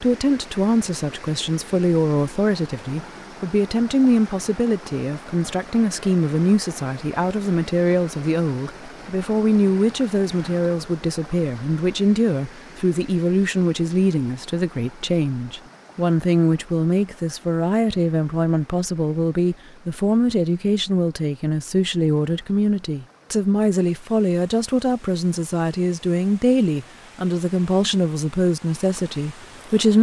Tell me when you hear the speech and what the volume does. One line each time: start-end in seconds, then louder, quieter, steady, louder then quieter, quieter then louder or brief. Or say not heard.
0.0-29.9 steady.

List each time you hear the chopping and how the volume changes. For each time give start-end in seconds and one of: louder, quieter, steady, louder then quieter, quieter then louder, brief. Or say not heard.
not heard.